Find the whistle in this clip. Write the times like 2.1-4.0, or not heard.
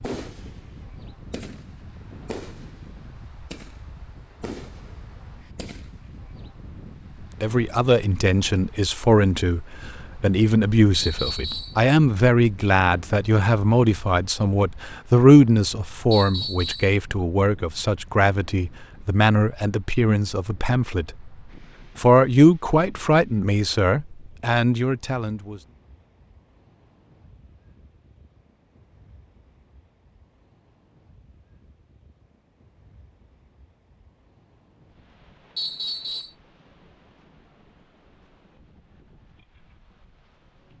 10.9-11.8, 16.1-16.9, 35.5-36.4.